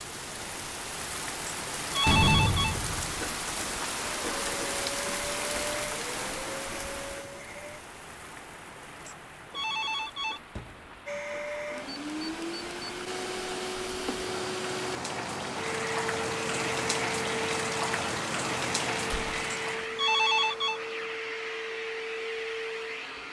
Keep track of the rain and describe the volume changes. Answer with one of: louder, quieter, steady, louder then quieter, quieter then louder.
quieter then louder.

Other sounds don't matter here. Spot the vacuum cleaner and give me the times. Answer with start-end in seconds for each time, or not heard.
4.2-7.8, 11.1-23.2.